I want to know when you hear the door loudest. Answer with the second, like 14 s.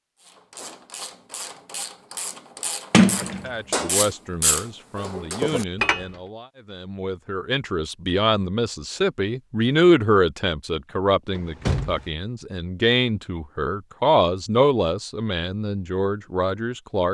3 s.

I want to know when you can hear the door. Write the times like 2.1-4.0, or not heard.
2.9-3.4, 11.3-12.1.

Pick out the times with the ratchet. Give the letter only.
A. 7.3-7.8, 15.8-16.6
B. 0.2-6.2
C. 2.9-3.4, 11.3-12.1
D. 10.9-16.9
B.